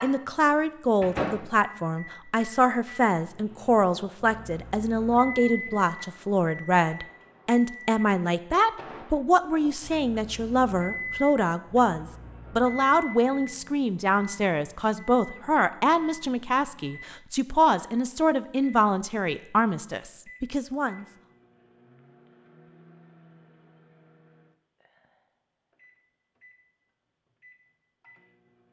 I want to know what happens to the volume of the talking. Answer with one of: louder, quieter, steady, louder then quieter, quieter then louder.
steady.